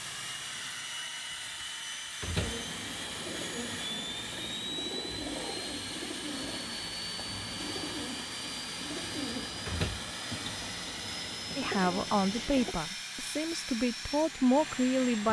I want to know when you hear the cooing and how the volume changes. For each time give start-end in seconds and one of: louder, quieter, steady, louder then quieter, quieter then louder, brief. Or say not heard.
2.4-12.8 steady.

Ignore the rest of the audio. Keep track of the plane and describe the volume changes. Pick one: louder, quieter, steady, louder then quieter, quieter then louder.
steady.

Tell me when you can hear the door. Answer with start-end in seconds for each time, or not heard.
1.6-2.6, 9.7-10.6.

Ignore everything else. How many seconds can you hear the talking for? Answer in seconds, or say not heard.
4 s.